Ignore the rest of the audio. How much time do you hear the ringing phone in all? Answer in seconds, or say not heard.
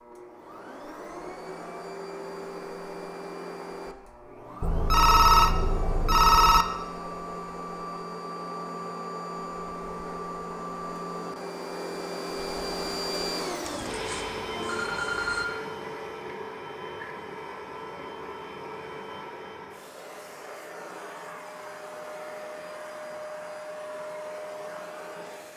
4 s.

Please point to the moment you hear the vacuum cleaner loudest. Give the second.
13 s.